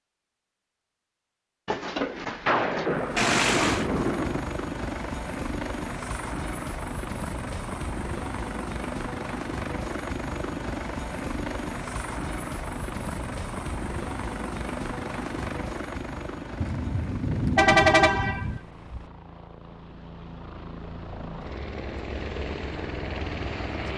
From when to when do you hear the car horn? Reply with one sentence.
The car horn can be heard from 3.1 to 3.9 s and from 17.6 to 19.0 s.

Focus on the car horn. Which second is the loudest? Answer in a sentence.
The loudest moment of the car horn is at 18 seconds.